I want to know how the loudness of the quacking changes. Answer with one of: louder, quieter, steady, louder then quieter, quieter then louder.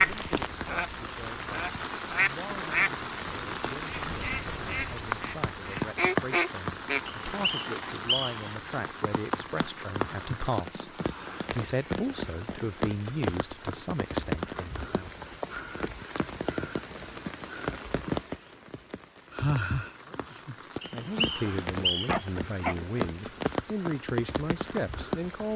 quieter then louder.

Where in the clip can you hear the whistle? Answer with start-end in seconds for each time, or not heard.
7.0-8.4, 20.8-22.2.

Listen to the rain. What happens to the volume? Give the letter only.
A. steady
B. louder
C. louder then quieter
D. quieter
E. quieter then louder
A.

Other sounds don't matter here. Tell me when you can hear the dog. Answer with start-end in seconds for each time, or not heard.
22.1-22.8.